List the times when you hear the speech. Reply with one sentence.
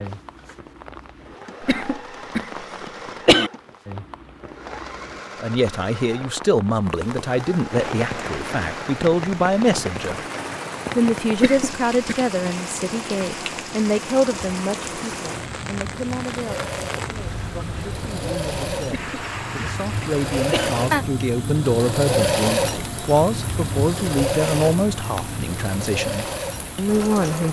The speech can be heard from 5.4 to 10.2 s and from 10.9 to 27.4 s.